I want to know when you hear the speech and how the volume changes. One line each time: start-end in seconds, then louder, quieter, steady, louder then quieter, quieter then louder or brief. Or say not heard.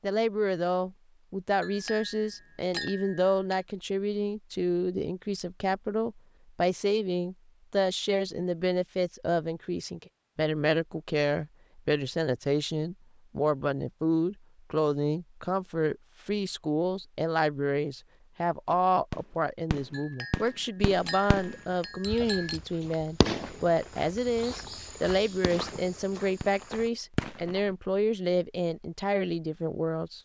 0.0-30.2 steady.